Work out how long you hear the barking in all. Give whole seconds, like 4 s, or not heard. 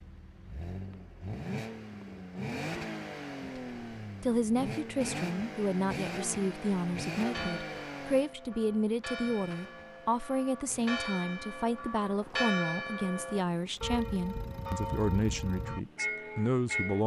not heard.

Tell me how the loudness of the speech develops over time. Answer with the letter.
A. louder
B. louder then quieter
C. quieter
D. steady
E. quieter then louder
D.